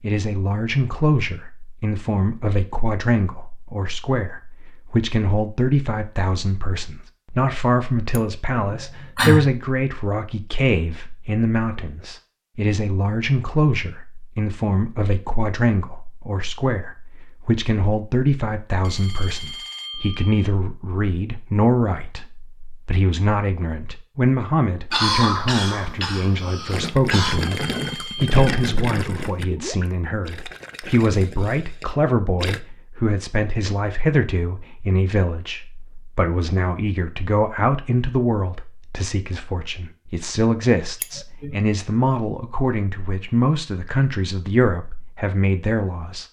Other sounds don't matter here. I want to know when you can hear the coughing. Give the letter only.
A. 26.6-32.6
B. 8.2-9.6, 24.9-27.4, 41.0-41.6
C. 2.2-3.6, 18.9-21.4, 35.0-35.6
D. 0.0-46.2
B.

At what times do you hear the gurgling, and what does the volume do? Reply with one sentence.
The gurgling can be heard from 26.6 to 32.6 s, getting quieter.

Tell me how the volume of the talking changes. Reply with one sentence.
The volume of the talking stays about the same.